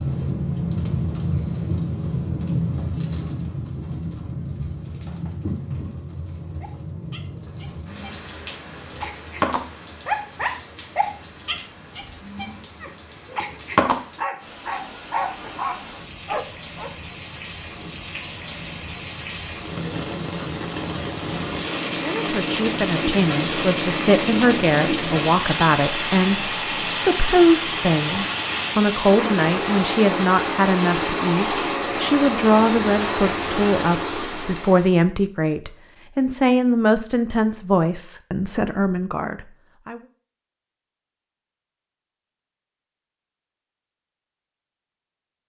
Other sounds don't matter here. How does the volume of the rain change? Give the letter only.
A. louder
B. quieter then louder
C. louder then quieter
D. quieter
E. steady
B.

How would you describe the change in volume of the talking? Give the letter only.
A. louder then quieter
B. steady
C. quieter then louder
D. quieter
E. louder
B.